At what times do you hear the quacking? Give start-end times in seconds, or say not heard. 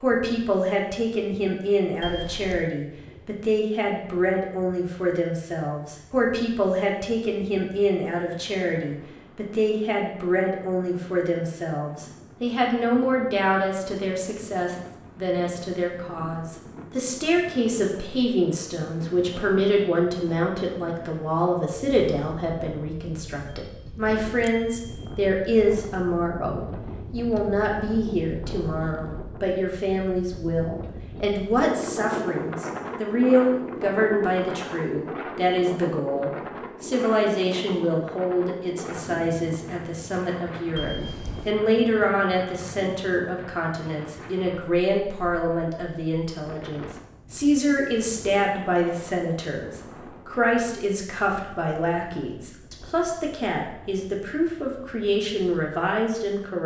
not heard.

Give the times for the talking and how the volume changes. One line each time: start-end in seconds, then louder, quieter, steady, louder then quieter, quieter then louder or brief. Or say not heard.
0.0-56.6 steady.